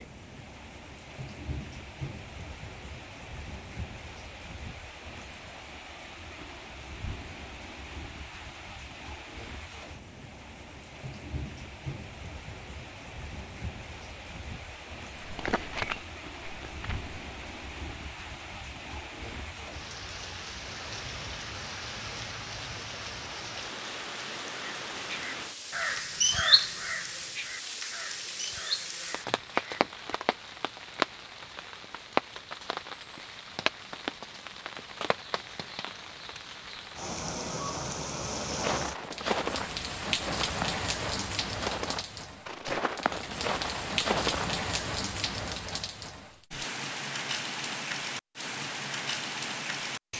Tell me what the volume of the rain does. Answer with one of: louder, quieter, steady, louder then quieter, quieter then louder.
louder.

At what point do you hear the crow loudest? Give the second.
26 s.